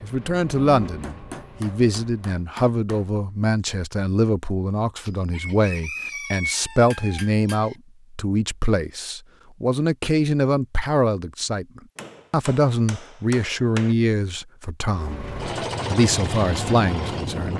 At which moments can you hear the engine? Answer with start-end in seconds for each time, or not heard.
0.0-2.4, 14.8-17.5.